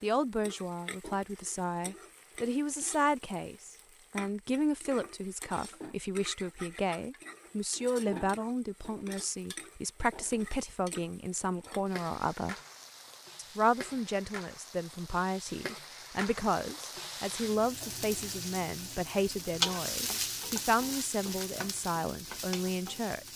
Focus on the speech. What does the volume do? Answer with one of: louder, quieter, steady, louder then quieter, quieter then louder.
steady.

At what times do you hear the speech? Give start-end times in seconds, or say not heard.
0.0-12.6, 13.3-23.3.